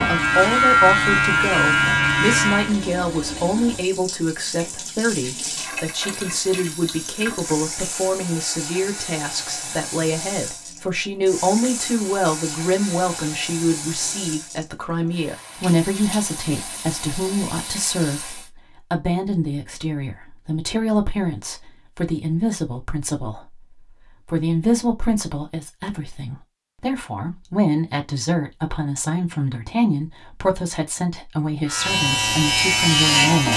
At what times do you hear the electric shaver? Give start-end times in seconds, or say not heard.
0.0-2.7, 31.6-33.5.